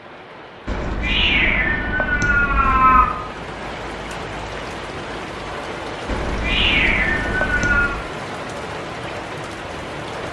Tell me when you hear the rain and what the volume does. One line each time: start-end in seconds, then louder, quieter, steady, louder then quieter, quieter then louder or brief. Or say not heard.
0.0-10.2 louder.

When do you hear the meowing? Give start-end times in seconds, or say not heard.
0.7-3.1, 6.0-8.1.